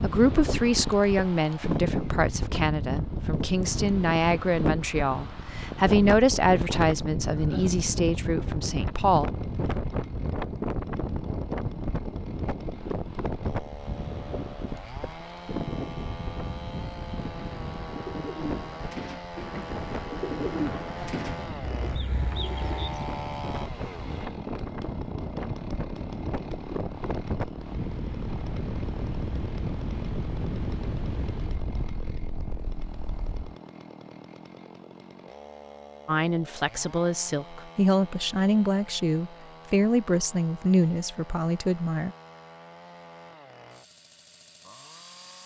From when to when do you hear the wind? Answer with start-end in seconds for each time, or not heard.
0.0-33.5.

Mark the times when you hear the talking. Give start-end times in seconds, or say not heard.
0.0-9.3, 36.0-42.1.